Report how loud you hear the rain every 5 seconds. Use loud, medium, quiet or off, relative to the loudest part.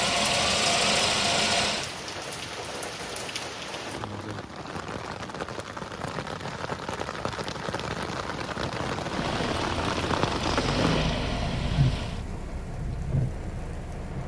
medium, loud, loud.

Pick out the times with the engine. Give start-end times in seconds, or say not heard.
0.0-1.9, 9.1-12.2.